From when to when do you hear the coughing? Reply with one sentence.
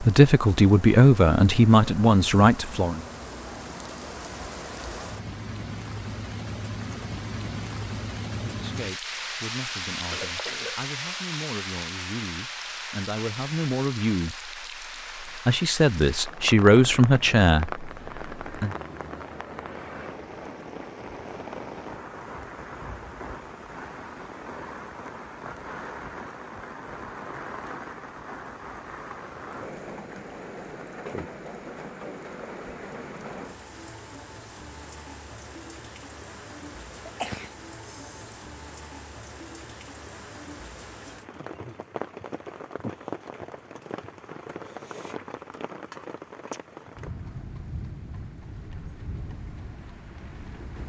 The coughing can be heard from 10.1 to 10.9 s and from 37.0 to 38.3 s.